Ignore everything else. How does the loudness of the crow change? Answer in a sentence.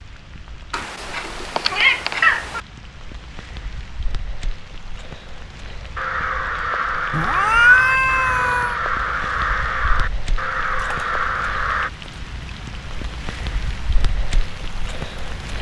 The loudness of the crow stays about the same.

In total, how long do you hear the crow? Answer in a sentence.
You can hear the crow for 6 seconds altogether.